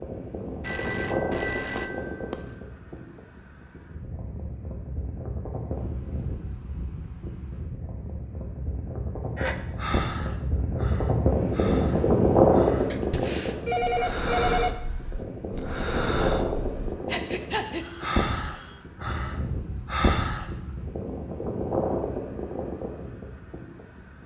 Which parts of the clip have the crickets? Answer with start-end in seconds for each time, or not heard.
not heard.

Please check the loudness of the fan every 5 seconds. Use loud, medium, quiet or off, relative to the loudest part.
medium, quiet, loud, medium, medium.